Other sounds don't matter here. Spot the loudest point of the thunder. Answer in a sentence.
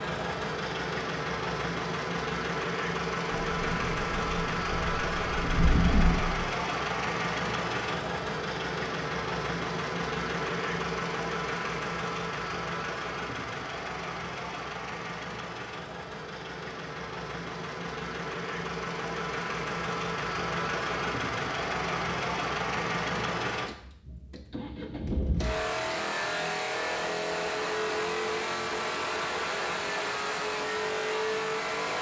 The volume of the thunder peaks at 6 seconds.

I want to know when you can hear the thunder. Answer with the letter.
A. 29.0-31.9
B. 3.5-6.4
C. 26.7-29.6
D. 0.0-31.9
B.